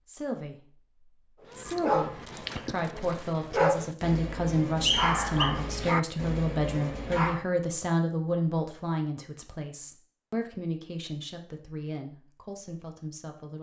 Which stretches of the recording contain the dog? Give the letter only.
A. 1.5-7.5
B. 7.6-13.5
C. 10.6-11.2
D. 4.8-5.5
A.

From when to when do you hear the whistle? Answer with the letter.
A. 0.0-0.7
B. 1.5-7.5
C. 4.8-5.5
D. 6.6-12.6
C.